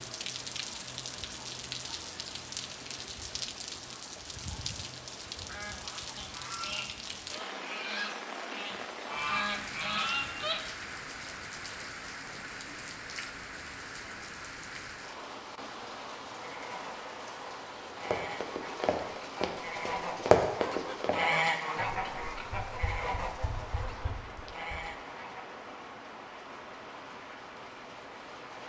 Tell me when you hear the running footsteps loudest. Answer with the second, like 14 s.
20 s.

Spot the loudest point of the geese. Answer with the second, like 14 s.
21 s.